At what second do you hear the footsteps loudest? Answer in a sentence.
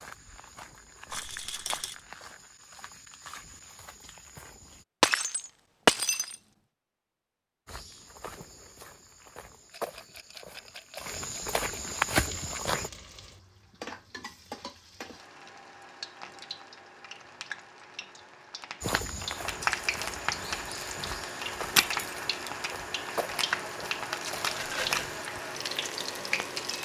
The loudest moment of the footsteps is at 12 seconds.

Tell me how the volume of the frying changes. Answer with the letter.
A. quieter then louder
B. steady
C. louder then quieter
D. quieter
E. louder
E.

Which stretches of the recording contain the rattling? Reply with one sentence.
You can hear the rattling from 1.1 to 2.0 s, from 9.7 to 12.0 s and from 24.6 to 25.1 s.